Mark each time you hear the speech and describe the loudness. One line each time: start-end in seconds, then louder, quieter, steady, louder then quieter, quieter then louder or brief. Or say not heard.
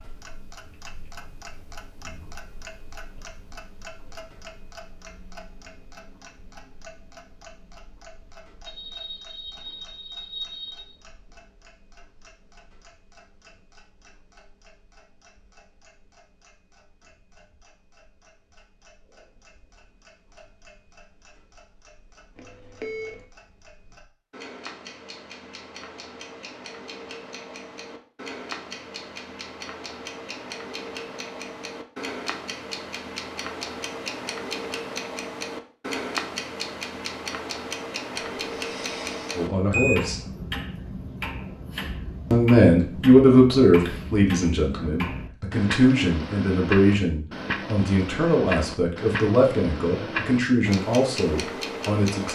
39.3-40.2 brief
42.3-52.3 quieter.